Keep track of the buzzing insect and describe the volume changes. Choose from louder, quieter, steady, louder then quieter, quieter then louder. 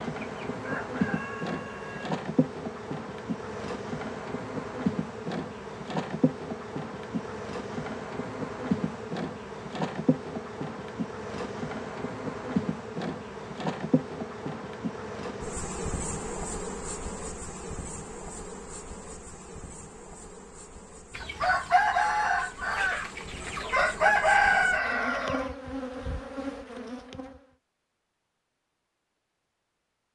quieter.